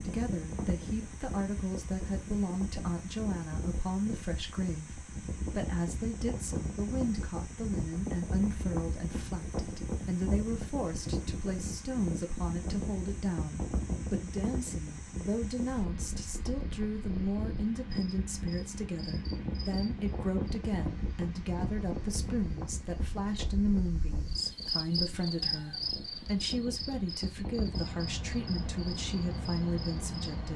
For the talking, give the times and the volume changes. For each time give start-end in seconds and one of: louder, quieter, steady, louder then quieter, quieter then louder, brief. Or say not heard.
0.0-30.5 steady.